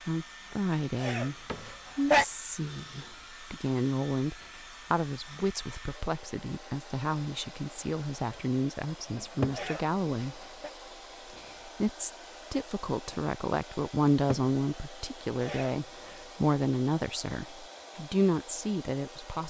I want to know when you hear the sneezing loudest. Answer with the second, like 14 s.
2 s.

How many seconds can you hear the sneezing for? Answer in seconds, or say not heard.
3 s.